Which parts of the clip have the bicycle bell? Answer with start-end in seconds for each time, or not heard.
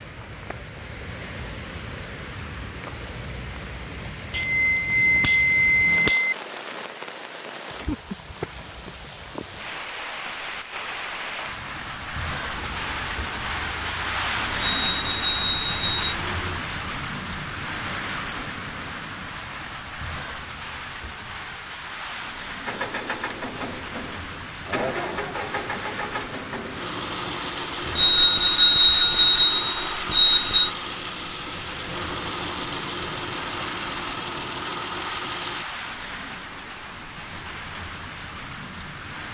4.3-6.3, 14.8-16.1, 27.9-30.7.